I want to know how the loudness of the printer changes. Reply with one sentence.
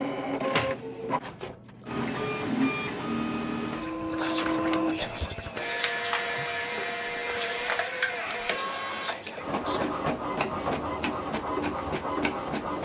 The loudness of the printer stays about the same.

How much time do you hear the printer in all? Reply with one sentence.
You can hear the printer for 13 seconds altogether.